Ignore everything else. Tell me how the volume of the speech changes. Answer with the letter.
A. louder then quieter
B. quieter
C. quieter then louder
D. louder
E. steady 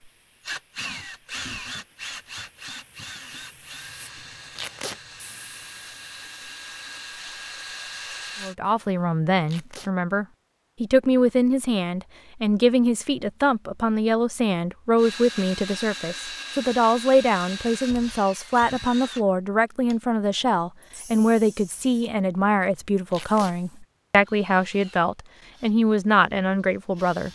E.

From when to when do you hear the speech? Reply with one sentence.
The speech can be heard from 8.4 to 27.3 s.